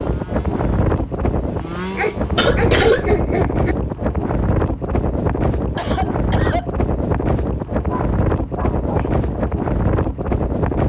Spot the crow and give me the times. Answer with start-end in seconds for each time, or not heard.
not heard.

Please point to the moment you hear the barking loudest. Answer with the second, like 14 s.
3 s.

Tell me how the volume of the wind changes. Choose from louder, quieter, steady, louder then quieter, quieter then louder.
steady.